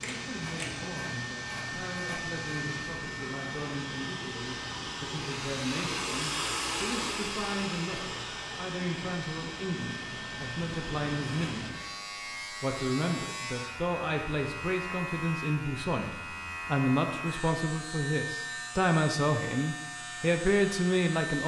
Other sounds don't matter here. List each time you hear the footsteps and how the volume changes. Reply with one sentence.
The footsteps can't be heard in this clip.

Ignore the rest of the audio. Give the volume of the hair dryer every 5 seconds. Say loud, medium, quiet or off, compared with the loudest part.
medium, loud, medium, off, off.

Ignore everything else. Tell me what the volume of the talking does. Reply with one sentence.
The volume of the talking goes up.